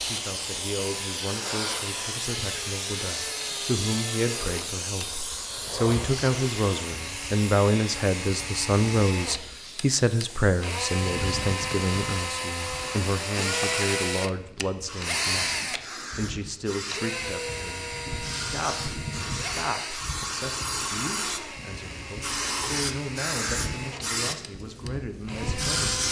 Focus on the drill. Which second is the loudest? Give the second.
14 s.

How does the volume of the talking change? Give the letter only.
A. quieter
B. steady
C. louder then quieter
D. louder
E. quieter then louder
C.